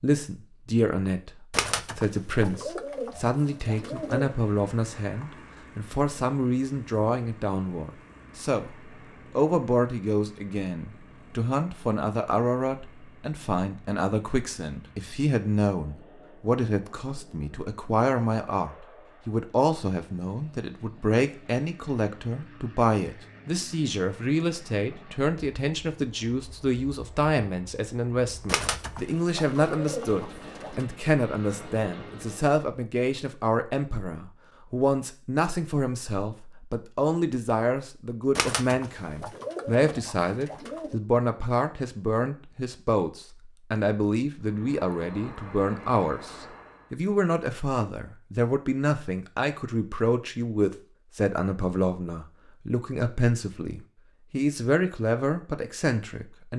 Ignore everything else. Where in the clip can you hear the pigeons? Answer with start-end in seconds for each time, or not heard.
1.5-4.3, 28.4-30.9, 38.4-41.0.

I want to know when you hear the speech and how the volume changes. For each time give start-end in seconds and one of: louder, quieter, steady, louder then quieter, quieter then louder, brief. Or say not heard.
0.0-56.5 steady.